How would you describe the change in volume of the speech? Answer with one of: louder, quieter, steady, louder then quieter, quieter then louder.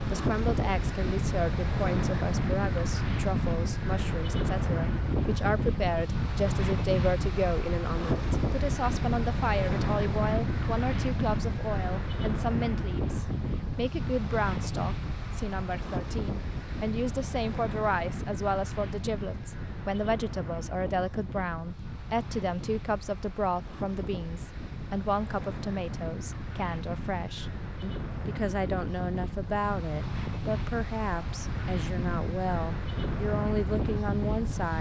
steady.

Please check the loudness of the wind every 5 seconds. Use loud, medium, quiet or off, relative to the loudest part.
loud, loud, loud, medium, medium, medium, loud.